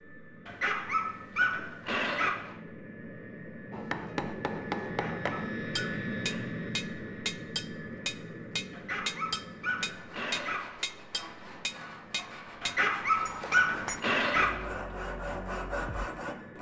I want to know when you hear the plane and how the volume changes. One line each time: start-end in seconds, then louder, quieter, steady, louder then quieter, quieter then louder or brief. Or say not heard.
0.0-16.5 louder then quieter.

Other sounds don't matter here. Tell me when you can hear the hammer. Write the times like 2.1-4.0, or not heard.
3.7-14.0.